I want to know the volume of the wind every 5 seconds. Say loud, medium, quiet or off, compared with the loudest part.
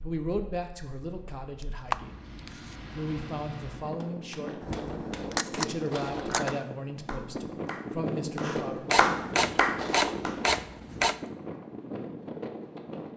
medium, loud, loud.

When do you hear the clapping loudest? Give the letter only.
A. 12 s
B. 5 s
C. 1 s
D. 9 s
D.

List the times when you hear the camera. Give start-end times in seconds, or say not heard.
1.6-2.8, 4.6-6.5, 8.9-11.2.